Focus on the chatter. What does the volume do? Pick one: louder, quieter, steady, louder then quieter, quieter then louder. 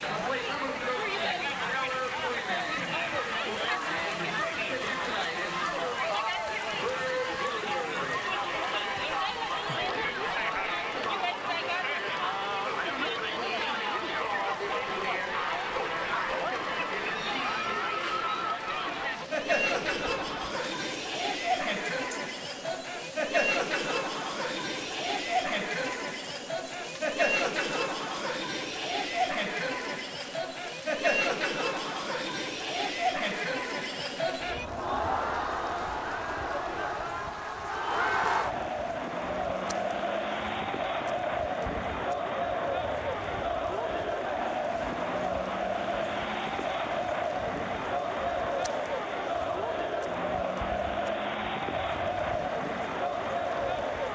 steady.